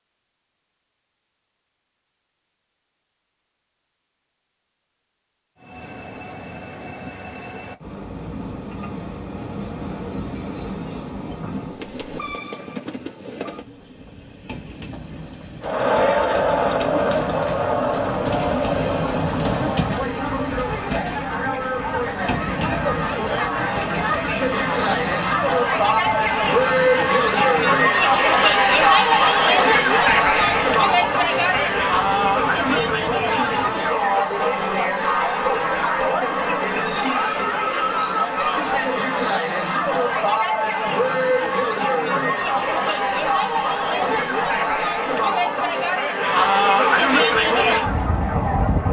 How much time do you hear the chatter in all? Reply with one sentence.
The chatter can be heard for 33 seconds in total.